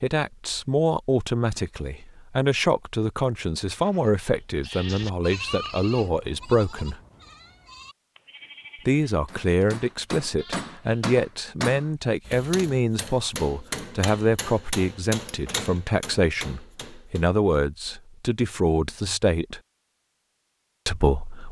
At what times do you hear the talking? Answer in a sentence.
The talking can be heard from 0.0 to 7.0 s, from 8.8 to 19.6 s and from 20.9 to 21.4 s.